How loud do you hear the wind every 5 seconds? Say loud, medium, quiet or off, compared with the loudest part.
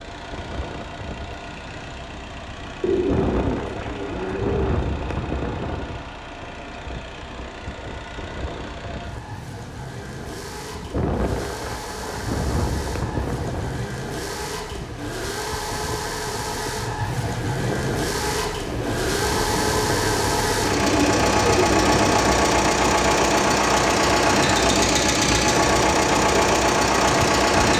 loud, medium, loud, loud, loud, loud.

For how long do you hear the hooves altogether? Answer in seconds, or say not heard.
not heard.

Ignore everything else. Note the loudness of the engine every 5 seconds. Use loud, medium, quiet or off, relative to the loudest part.
quiet, quiet, quiet, medium, loud, loud.